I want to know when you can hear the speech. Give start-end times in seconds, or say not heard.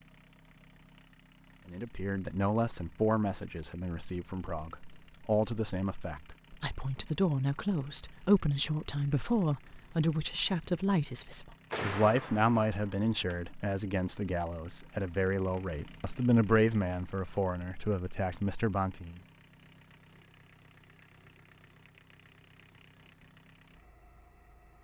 1.6-19.2.